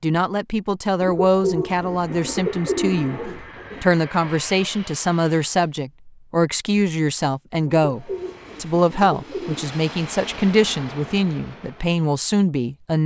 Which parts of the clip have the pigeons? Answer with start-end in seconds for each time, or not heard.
1.0-4.0, 7.7-9.8.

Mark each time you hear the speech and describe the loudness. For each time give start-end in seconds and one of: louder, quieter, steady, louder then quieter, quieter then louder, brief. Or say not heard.
0.0-13.0 steady.